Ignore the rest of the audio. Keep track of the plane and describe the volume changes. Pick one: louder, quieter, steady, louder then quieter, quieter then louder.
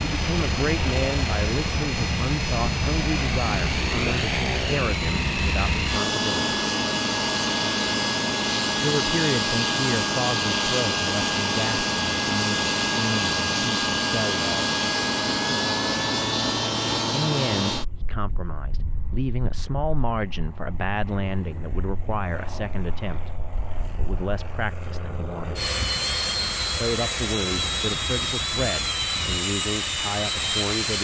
quieter then louder.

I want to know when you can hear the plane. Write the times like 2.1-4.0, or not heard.
0.0-30.9.